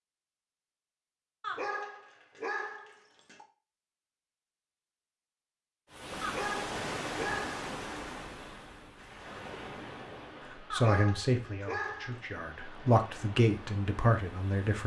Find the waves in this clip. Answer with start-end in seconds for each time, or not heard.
5.9-14.8.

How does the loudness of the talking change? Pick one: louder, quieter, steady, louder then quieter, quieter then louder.
quieter then louder.